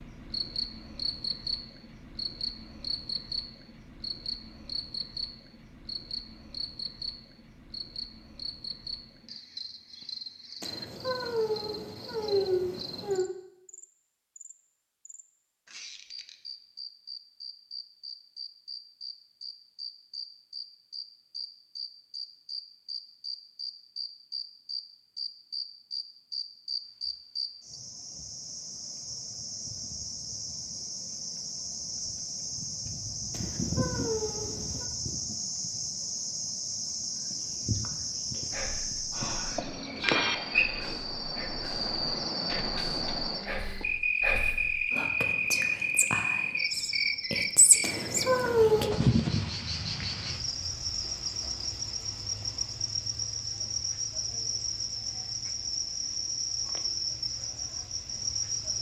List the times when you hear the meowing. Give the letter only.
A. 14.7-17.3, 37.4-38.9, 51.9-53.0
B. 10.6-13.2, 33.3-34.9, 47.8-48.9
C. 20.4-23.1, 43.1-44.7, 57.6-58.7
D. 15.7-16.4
B.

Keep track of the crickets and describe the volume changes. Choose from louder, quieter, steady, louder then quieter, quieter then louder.
louder.